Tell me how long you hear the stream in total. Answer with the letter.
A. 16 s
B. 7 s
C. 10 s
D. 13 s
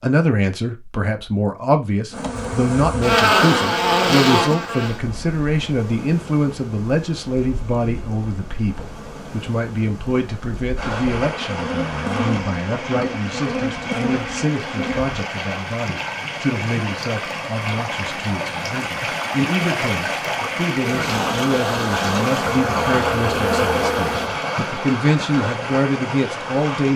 A.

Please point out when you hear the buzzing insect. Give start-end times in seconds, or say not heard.
2.1-15.1, 20.8-24.3.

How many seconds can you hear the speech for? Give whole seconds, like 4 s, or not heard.
27 s.